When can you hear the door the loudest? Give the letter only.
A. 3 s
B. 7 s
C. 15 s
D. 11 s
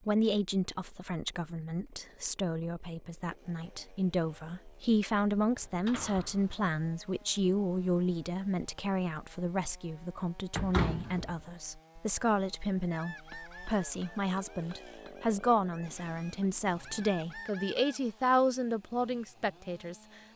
D.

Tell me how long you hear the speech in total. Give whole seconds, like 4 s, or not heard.
20 s.